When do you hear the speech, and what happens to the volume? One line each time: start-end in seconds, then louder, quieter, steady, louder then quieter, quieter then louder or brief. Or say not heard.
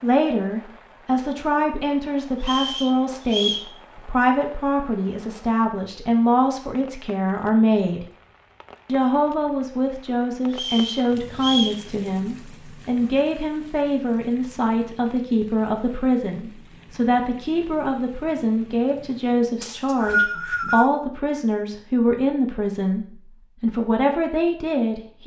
0.0-8.1 steady
8.8-25.2 steady.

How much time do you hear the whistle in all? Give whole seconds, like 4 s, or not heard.
4 s.